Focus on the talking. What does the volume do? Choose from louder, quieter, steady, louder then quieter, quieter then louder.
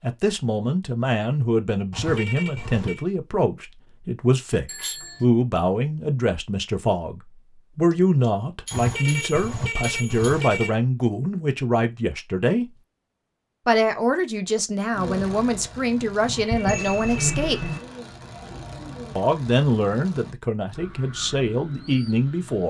steady.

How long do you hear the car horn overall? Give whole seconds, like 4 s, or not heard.
4 s.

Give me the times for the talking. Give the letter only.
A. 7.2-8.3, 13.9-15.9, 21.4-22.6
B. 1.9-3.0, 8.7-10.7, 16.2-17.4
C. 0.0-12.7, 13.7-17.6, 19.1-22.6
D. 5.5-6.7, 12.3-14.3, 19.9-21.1
C.